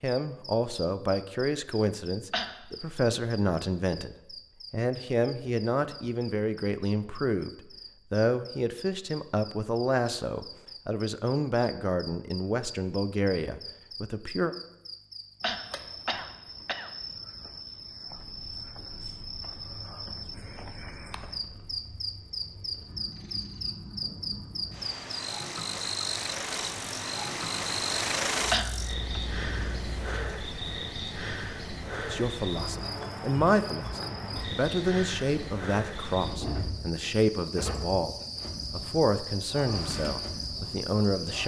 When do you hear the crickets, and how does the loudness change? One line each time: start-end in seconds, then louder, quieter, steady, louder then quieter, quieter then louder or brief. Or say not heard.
0.0-41.4 louder.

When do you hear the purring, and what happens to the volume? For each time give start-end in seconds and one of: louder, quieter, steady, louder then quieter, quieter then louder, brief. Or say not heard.
18.1-30.2 louder.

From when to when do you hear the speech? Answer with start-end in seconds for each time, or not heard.
0.0-7.5, 8.1-14.6, 32.1-41.4.